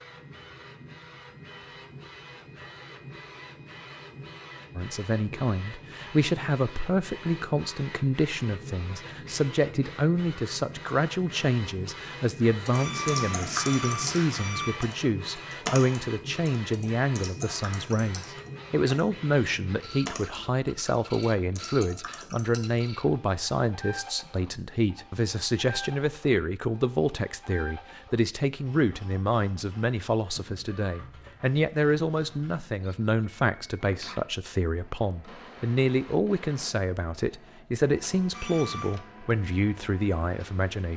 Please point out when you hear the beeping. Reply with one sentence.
The beeping can be heard from 12.7 to 14.8 s and from 38.3 to 39.0 s.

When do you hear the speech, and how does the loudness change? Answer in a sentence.
The speech can be heard from 4.8 to 40.9 s, at a steady volume.